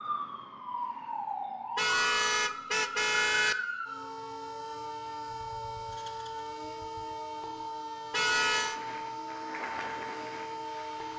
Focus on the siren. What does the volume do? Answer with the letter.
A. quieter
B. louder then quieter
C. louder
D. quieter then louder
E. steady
E.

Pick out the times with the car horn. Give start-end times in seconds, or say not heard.
1.8-3.5, 8.1-8.8.